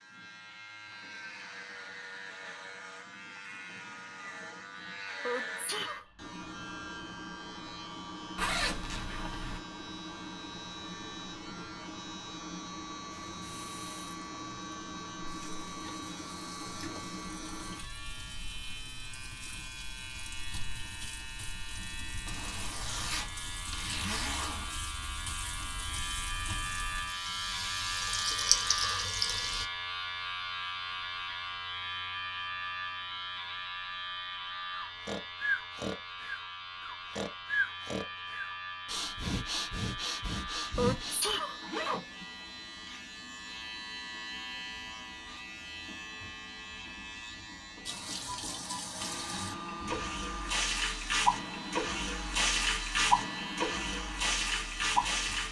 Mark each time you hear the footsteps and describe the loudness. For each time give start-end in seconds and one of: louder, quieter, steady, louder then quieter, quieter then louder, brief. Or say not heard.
not heard.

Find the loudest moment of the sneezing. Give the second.
41 s.